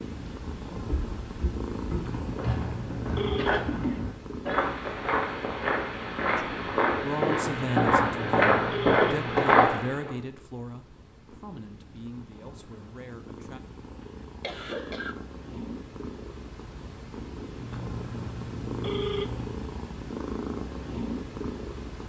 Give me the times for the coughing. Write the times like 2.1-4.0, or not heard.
3.4-4.8, 14.0-15.2.